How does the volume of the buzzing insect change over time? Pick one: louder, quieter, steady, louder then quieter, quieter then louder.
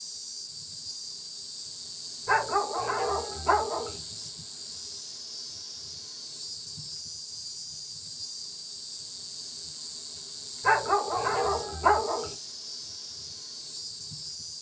steady.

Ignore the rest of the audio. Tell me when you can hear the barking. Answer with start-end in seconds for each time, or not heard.
2.2-4.0, 10.6-12.3.